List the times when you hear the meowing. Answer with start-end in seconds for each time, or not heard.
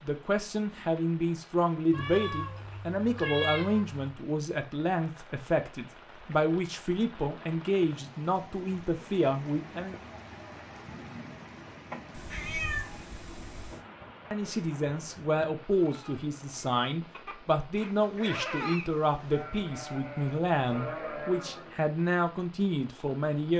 1.9-4.1, 12.1-13.8, 17.9-19.4.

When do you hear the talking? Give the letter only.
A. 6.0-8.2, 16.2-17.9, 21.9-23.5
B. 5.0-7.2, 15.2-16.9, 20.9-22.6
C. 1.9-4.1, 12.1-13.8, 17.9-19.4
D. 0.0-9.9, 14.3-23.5
D.